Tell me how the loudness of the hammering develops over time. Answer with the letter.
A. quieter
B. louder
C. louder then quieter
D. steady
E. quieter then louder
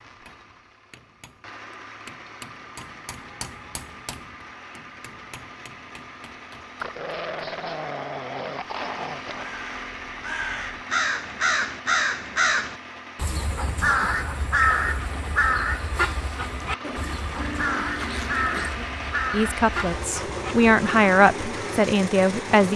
C.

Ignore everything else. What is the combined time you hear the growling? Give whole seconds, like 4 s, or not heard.
5 s.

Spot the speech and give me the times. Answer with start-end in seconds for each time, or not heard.
19.3-22.7.